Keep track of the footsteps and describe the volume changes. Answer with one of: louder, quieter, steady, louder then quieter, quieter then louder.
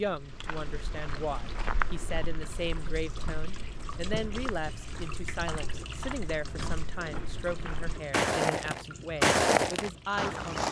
quieter then louder.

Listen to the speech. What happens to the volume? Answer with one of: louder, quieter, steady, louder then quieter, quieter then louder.
steady.